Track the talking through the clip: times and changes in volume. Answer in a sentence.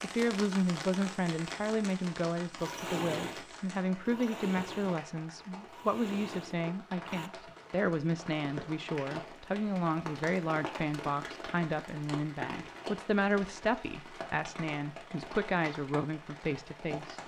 You can hear the talking from 0.0 to 17.2 s, at a steady volume.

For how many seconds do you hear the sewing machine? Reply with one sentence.
The sewing machine can be heard for 5 seconds in total.